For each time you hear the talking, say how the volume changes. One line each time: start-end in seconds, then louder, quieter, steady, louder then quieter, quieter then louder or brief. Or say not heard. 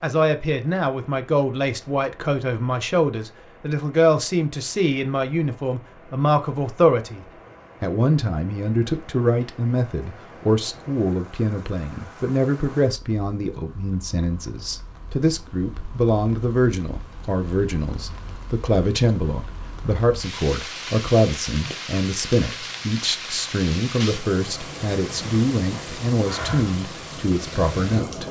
0.0-28.2 steady.